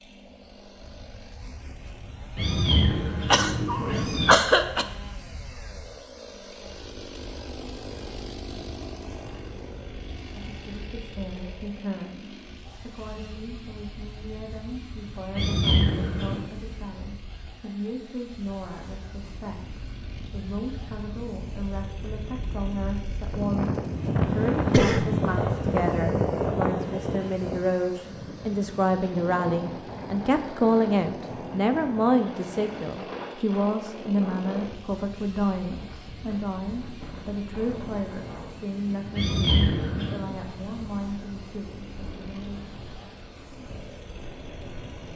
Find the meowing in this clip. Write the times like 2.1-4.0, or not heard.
2.4-4.4, 15.3-16.4, 39.1-40.2.